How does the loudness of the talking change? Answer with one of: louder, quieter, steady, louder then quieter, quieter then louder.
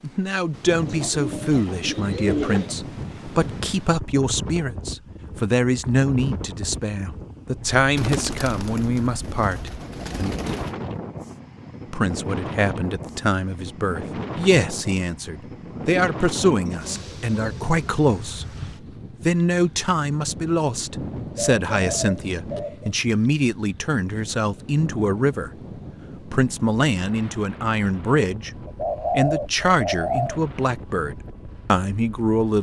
steady.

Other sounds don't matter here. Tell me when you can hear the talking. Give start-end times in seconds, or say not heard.
0.0-10.3, 11.9-18.6, 19.2-25.5, 26.2-32.5.